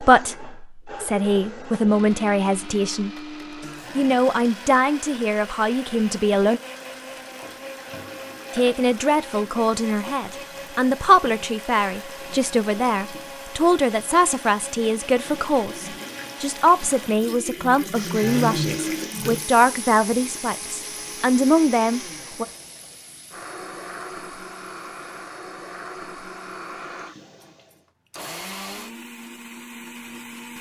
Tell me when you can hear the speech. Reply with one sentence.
The speech can be heard from 0.0 to 3.1 s, from 4.0 to 6.6 s and from 8.5 to 22.4 s.